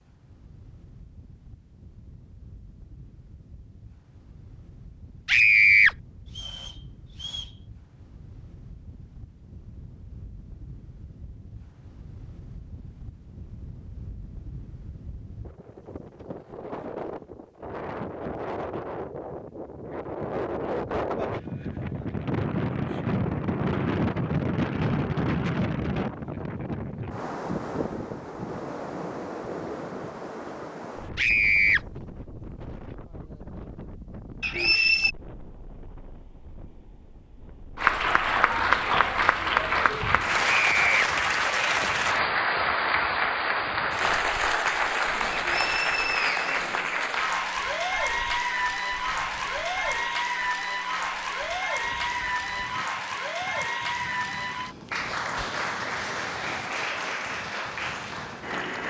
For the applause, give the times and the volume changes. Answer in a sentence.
You can hear the applause from 37.8 to 58.8 s, getting quieter.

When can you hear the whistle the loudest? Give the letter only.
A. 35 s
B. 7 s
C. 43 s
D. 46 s
A.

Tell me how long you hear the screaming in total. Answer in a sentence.
The screaming can be heard for 2 seconds in total.